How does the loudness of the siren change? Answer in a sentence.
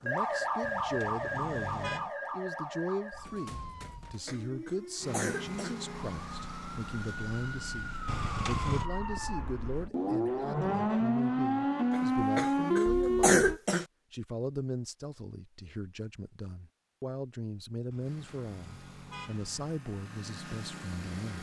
The loudness of the siren goes down, then up.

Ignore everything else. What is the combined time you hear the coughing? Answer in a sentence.
The coughing can be heard for 4 seconds in total.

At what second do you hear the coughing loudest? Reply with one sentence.
The volume of the coughing peaks at 13 seconds.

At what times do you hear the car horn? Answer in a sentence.
The car horn can be heard from 0.6 to 2.1 s, from 8.1 to 8.8 s and from 17.9 to 19.6 s.